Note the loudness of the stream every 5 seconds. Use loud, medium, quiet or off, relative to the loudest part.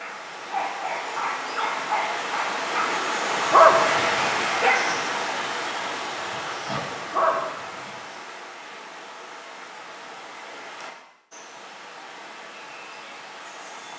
loud, medium, quiet.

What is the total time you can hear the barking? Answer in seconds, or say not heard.
8 s.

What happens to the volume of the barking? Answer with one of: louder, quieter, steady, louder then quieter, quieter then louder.
louder then quieter.